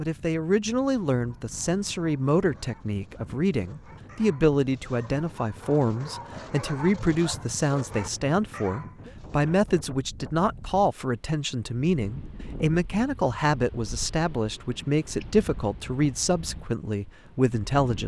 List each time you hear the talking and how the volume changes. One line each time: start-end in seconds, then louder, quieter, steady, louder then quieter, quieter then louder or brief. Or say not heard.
0.0-18.0 steady.